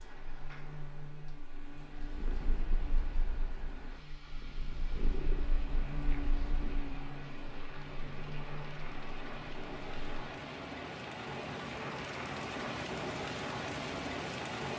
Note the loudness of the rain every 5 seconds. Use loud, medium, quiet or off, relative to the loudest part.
quiet, medium, loud.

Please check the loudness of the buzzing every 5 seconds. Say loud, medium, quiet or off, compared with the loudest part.
medium, loud, off.